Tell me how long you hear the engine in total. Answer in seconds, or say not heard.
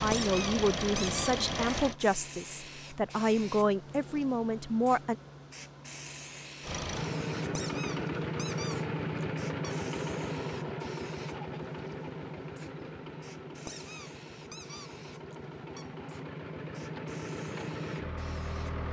14 s.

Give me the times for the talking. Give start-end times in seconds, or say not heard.
0.0-5.2.